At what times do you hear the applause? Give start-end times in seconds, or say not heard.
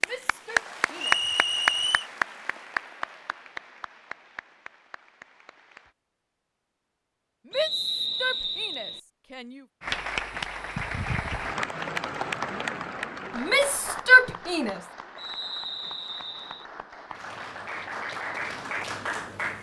0.0-5.9, 9.8-19.5.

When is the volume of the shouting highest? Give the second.
14 s.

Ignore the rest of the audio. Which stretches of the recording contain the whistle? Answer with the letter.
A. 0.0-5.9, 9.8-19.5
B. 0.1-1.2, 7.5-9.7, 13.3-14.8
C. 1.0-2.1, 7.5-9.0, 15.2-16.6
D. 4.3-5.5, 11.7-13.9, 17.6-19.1
C.